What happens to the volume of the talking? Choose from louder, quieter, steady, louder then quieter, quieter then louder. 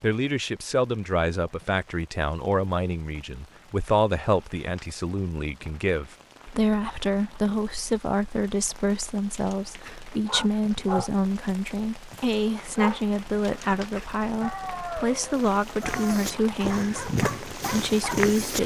steady.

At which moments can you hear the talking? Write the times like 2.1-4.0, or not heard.
0.0-18.6.